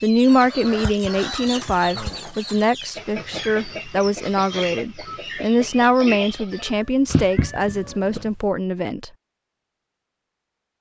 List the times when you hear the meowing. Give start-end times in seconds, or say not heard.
0.7-2.2, 6.5-8.3.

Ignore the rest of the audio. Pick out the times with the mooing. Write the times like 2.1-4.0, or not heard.
not heard.